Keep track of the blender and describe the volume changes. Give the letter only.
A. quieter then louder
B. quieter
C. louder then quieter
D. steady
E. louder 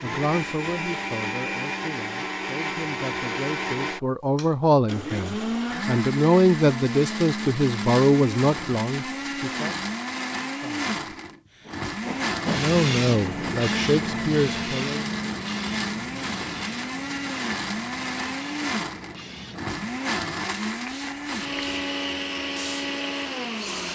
D.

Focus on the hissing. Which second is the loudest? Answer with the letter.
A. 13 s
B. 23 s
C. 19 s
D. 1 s
A.